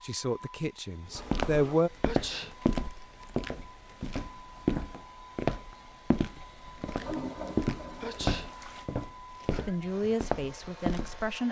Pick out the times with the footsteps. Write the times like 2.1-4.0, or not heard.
1.1-11.3.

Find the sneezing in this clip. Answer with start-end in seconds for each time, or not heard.
2.0-2.5, 8.0-8.5.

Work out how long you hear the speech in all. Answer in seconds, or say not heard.
4 s.